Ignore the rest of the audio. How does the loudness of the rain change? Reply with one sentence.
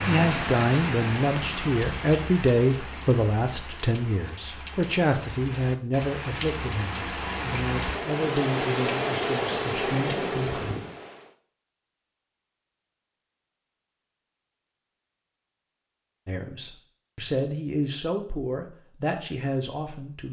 The volume of the rain goes down, then up.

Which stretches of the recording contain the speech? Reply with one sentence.
You can hear the speech from 0.1 to 10.6 s and from 16.2 to 20.2 s.